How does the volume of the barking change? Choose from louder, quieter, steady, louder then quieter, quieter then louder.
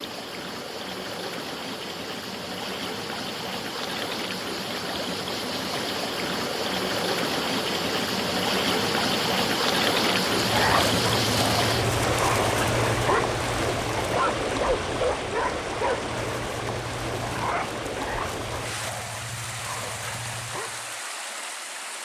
quieter.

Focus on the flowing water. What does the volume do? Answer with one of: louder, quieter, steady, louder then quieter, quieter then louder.
louder then quieter.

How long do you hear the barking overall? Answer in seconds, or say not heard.
11 s.